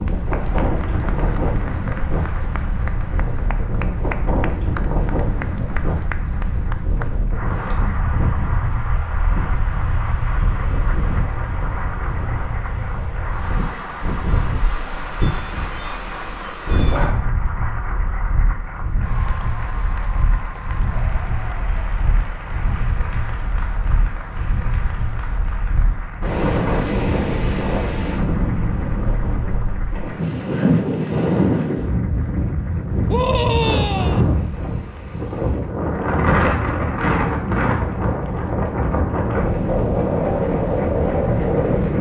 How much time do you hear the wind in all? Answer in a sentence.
The wind can be heard for 42 seconds in total.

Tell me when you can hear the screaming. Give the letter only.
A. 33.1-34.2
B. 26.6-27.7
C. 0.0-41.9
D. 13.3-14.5
A.